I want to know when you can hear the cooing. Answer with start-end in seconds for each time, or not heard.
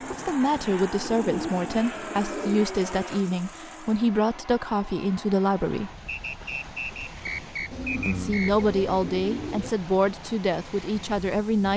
1.0-2.6, 7.7-9.7.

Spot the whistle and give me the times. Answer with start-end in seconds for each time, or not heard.
6.0-8.7.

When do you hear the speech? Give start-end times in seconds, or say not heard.
0.1-5.9, 8.1-11.7.